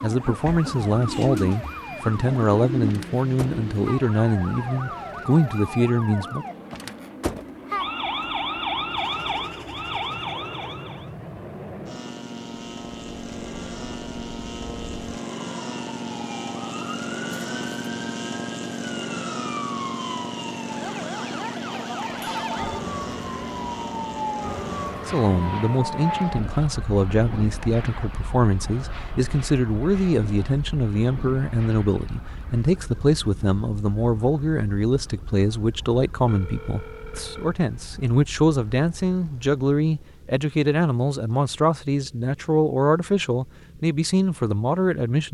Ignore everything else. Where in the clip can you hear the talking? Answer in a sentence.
The talking can be heard from 0.0 to 6.5 s and from 25.0 to 45.2 s.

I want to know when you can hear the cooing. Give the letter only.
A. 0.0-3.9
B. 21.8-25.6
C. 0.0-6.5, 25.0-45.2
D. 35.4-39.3
A.